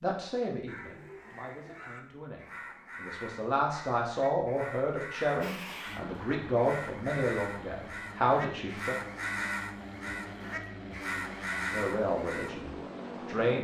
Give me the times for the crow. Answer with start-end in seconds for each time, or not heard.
0.7-12.6.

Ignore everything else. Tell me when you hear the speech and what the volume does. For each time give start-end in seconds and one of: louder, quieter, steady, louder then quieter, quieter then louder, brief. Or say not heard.
0.0-8.9 louder
11.7-13.5 brief.